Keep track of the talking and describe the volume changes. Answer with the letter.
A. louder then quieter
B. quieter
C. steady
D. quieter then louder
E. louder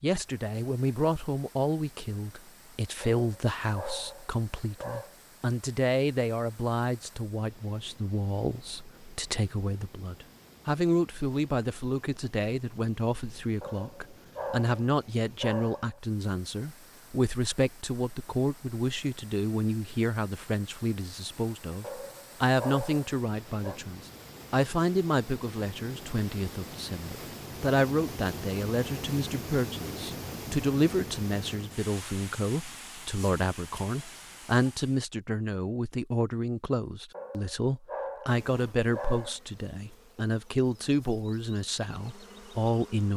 C.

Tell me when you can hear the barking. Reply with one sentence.
The barking can be heard from 3.0 to 5.2 s, from 13.6 to 16.0 s, from 21.8 to 23.8 s and from 37.1 to 39.4 s.